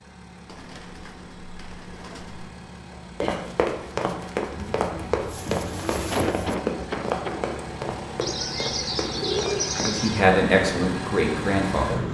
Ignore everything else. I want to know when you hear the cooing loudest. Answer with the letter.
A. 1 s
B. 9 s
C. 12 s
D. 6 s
B.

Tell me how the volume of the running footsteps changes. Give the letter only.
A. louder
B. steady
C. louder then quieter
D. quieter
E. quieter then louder
D.